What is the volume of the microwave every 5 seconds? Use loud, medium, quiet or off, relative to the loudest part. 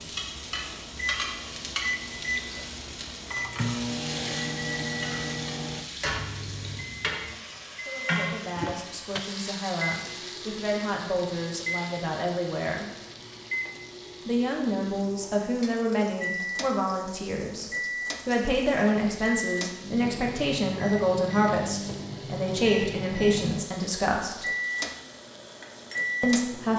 loud, loud, medium, loud, loud, loud.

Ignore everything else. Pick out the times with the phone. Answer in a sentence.
You can't hear the phone here.